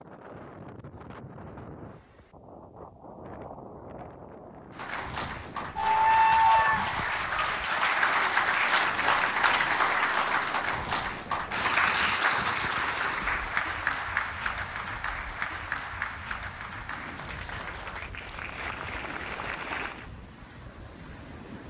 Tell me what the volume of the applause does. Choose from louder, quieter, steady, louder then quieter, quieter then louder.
quieter.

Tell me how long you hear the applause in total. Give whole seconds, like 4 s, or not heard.
15 s.